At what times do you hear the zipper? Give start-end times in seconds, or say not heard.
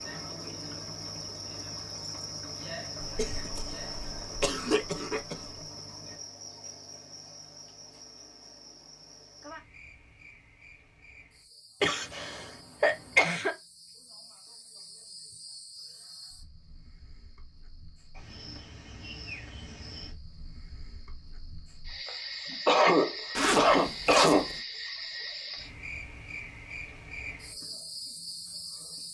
23.4-24.6.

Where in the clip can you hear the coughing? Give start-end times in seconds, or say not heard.
3.0-5.5, 11.8-13.6, 22.1-24.5.